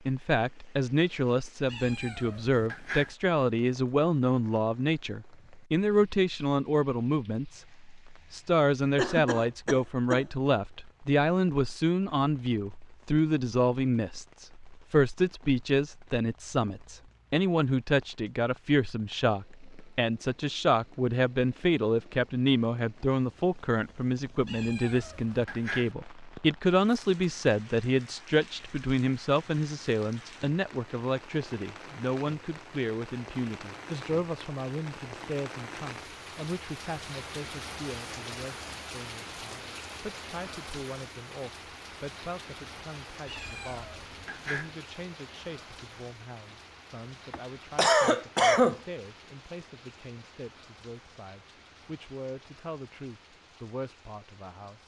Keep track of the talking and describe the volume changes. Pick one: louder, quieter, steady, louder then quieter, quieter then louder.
quieter.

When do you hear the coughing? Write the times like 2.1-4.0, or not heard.
8.9-10.2, 26.9-27.5, 47.3-48.8.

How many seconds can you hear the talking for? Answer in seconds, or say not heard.
55 s.